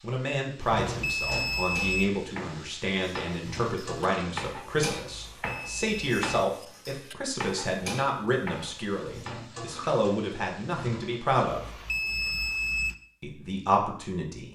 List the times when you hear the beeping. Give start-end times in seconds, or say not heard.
0.6-2.1, 5.0-6.2, 11.4-12.9.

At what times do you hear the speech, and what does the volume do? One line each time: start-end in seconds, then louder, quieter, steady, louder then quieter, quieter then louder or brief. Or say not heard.
0.0-11.8 steady
13.2-14.4 brief.